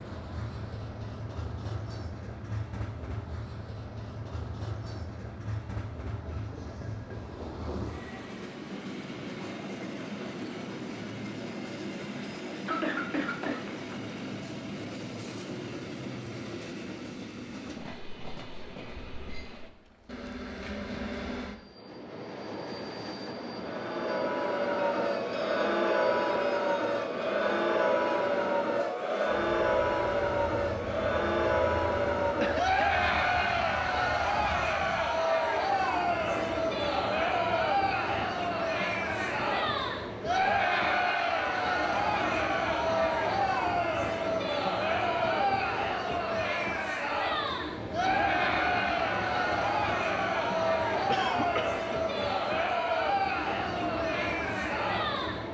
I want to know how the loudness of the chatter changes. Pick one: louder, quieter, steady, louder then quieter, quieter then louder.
steady.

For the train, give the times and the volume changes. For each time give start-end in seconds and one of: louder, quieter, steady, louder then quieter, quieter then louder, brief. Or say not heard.
0.0-55.4 steady.